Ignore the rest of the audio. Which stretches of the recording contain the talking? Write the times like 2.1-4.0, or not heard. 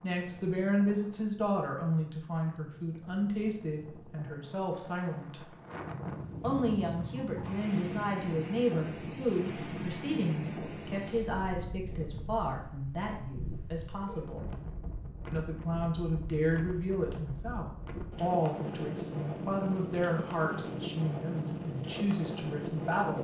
0.0-5.4, 6.4-14.4, 15.3-23.1.